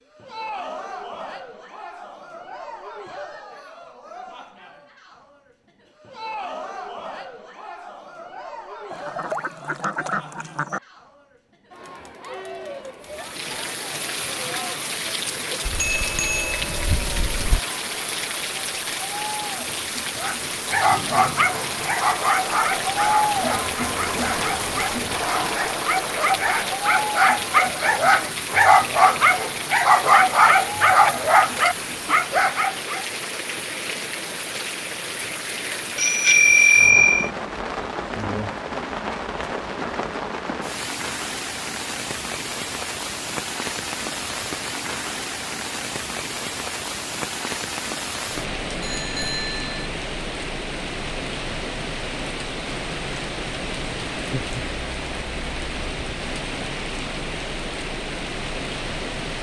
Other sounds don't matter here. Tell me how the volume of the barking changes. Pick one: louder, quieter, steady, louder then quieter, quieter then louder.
quieter then louder.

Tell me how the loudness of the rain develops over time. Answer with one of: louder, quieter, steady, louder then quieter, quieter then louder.
steady.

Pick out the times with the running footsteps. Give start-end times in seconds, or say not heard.
not heard.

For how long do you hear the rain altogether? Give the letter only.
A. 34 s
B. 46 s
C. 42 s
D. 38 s
B.